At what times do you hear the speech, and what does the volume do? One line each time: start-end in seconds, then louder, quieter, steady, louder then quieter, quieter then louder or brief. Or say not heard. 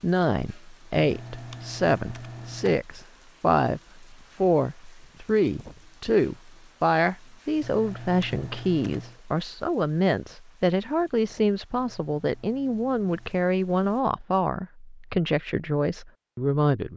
0.0-16.9 steady.